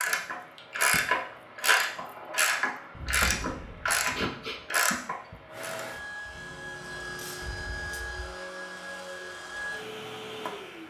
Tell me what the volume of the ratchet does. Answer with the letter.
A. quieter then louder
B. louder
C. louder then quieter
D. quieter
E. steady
D.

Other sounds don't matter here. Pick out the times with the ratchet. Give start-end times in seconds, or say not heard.
0.0-8.1.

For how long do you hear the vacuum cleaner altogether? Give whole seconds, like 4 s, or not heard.
11 s.